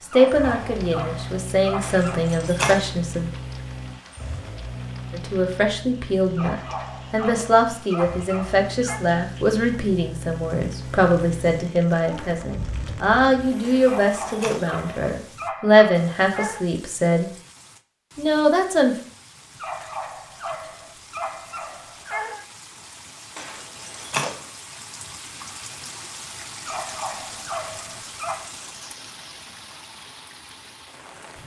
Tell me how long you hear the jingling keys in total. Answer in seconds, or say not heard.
3 s.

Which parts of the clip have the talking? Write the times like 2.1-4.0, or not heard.
0.0-3.3, 5.1-17.3, 18.1-18.9.